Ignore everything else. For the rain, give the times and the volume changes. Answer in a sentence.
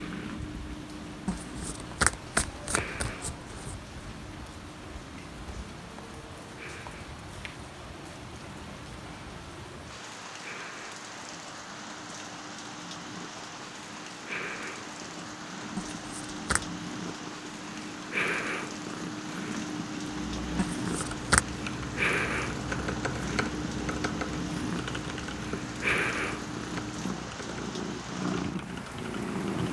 The rain can be heard from 0.0 to 29.6 s, at a steady volume.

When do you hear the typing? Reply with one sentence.
You can hear the typing from 20.3 to 29.6 s.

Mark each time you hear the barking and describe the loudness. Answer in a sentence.
You can't hear the barking here.